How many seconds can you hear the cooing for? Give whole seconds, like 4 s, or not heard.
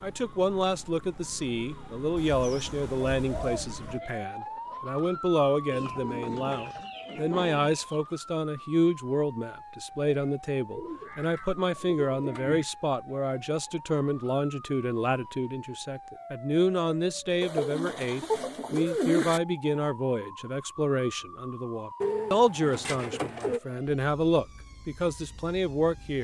9 s.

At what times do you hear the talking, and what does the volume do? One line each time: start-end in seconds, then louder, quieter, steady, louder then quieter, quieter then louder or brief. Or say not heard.
0.0-26.1 steady.